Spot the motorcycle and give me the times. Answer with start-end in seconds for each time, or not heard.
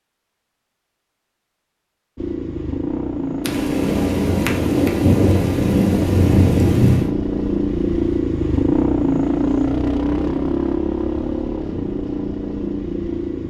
2.1-13.4.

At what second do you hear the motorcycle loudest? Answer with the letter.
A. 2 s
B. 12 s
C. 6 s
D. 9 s
D.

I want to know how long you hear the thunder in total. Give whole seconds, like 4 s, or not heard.
4 s.